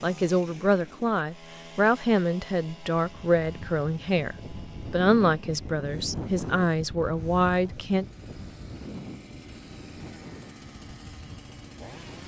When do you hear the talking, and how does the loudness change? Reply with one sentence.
The talking can be heard from 0.0 to 8.1 s, at a steady volume.